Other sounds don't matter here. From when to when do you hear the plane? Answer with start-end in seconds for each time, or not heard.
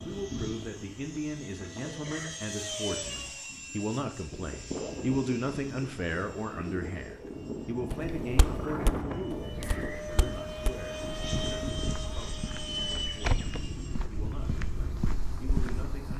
0.0-16.1.